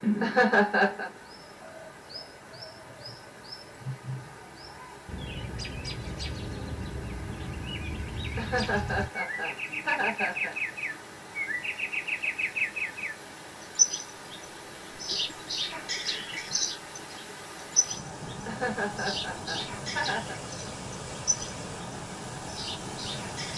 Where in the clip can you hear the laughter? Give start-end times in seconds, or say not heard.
0.2-1.1, 8.3-10.6, 18.4-20.4.